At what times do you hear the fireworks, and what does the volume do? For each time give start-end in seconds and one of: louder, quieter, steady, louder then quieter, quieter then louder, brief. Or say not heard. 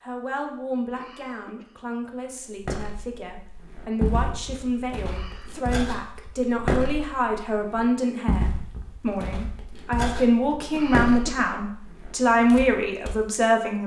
not heard.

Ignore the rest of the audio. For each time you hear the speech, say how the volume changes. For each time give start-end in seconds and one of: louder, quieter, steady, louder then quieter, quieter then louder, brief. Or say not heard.
0.0-13.8 louder.